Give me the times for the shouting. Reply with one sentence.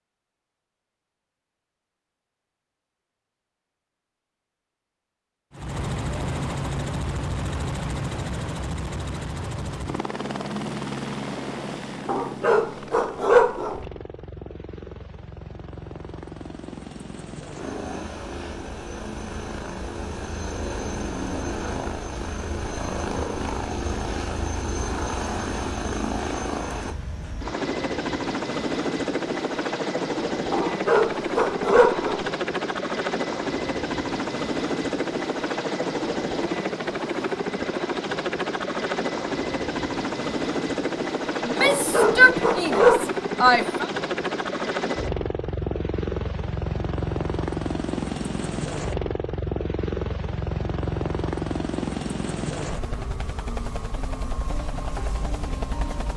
The shouting can be heard from 41.4 to 43.9 s.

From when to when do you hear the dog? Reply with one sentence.
You can hear the dog from 12.1 to 13.8 s, from 30.5 to 32.2 s and from 41.5 to 43.0 s.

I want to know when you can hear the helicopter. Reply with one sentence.
You can hear the helicopter from 5.5 to 56.1 s.